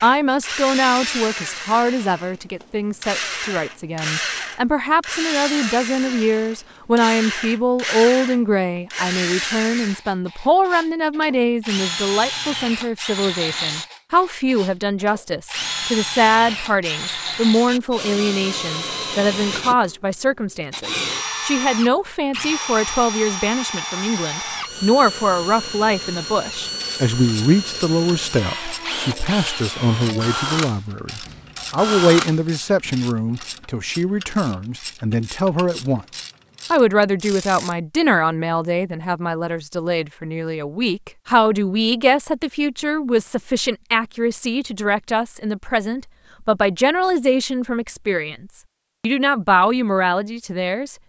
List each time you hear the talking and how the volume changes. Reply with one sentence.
The talking can be heard from 0.0 to 51.0 s, at a steady volume.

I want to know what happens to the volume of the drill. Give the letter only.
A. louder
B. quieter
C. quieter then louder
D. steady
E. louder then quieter
D.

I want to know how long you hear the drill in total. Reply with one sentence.
You can hear the drill for 33 seconds altogether.